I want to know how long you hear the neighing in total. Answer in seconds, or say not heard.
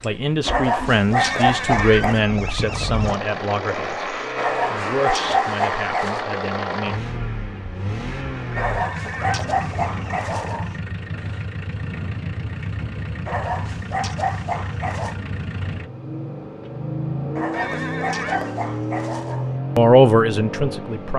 5 s.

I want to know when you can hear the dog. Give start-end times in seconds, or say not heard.
0.5-2.2, 4.3-6.2, 8.6-10.8, 13.2-15.2, 17.4-19.4.